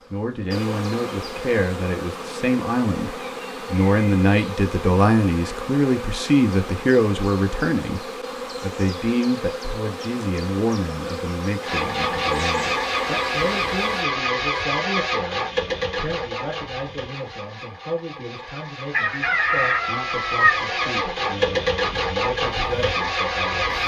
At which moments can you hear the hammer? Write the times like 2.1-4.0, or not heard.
not heard.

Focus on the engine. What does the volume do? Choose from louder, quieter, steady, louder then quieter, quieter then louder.
quieter then louder.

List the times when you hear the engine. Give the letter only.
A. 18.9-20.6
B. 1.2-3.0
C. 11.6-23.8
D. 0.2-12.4
C.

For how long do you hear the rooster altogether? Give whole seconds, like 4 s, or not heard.
2 s.